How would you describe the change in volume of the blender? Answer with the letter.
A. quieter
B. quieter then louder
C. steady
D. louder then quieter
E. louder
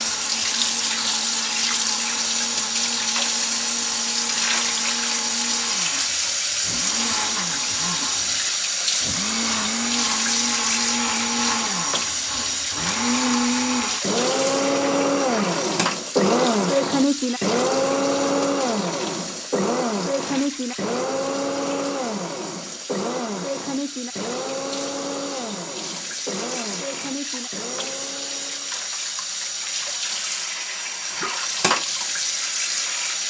D.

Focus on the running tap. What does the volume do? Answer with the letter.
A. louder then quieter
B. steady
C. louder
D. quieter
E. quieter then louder
E.